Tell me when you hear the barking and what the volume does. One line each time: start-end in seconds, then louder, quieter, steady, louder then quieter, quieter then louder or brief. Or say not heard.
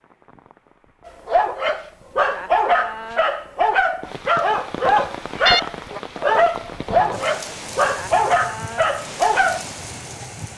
1.1-9.7 steady.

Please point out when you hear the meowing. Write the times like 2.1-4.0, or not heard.
4.8-5.6.